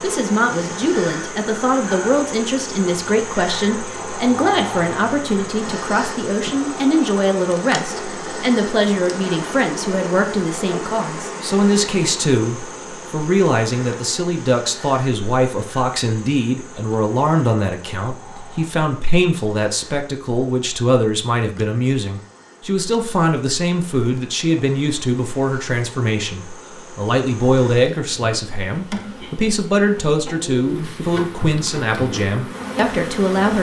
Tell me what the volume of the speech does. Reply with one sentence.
The volume of the speech stays about the same.